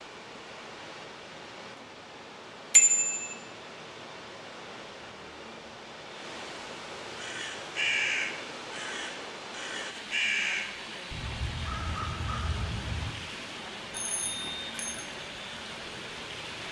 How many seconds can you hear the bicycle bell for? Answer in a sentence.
You can hear the bicycle bell for 2 seconds altogether.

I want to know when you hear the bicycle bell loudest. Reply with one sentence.
The loudest moment of the bicycle bell is at 3 seconds.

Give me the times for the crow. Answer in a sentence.
The crow can be heard from 7.2 to 13.1 s.